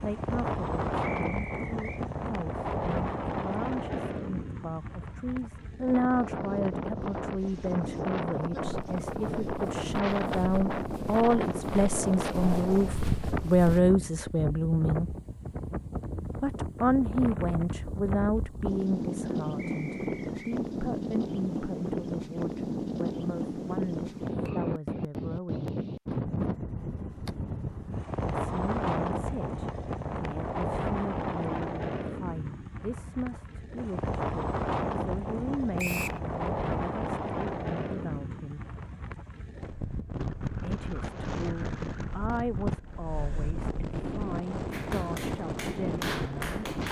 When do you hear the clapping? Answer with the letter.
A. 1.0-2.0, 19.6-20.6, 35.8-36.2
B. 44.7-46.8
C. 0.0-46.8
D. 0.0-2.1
B.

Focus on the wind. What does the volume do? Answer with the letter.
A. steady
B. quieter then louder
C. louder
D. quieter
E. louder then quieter
A.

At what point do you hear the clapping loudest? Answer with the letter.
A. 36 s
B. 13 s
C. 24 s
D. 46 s
D.